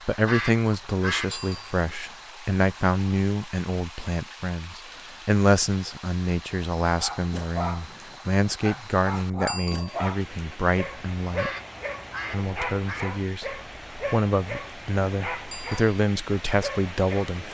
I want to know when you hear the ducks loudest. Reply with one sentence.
The volume of the ducks peaks at 1 second.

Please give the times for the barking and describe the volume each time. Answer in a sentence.
The barking can be heard from 7.0 to 17.4 s, at a steady volume.